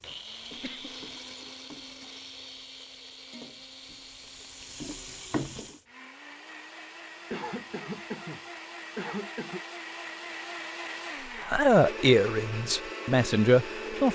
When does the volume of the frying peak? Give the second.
5 s.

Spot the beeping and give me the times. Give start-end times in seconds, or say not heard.
not heard.